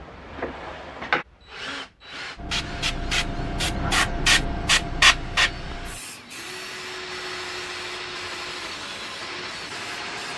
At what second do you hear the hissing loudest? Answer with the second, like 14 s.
5 s.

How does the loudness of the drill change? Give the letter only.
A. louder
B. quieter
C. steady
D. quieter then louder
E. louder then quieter
D.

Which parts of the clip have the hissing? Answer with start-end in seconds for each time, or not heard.
2.4-10.3.